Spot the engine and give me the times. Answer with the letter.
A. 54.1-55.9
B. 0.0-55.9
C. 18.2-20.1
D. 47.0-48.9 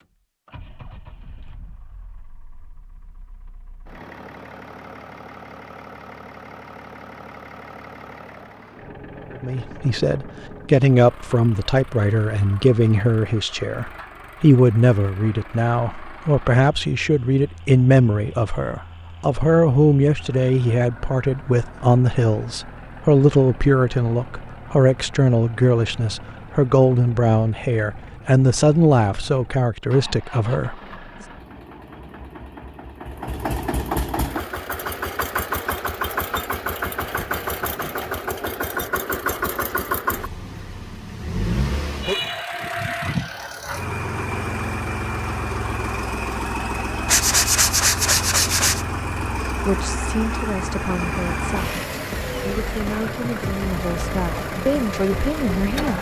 B.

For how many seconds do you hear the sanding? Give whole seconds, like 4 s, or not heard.
2 s.